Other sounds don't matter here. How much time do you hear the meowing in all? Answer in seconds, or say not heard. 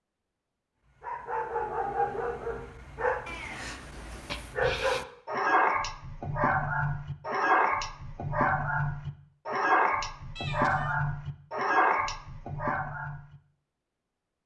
2 s.